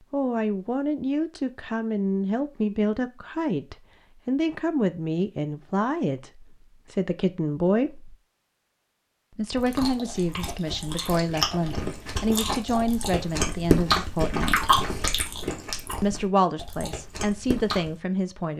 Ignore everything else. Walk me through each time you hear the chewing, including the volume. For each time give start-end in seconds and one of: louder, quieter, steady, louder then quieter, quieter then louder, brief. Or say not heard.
9.6-18.0 louder then quieter.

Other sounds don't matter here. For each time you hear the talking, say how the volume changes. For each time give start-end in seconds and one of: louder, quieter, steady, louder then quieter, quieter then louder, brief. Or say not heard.
0.1-8.2 steady
9.3-14.8 steady
16.0-18.5 brief.